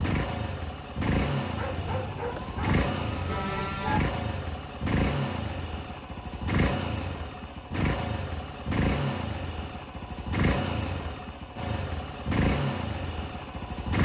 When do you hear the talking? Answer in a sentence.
The talking can't be heard in this clip.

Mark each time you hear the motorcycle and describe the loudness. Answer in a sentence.
You can hear the motorcycle from 0.0 to 13.9 s, at a steady volume.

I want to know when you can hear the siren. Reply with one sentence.
The siren can be heard from 1.7 to 4.0 s.